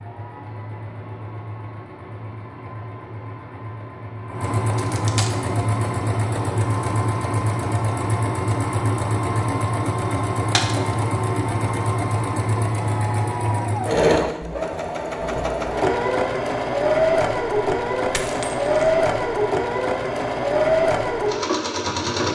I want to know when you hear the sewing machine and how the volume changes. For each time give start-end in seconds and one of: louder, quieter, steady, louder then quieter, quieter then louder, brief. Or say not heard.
0.0-22.3 louder.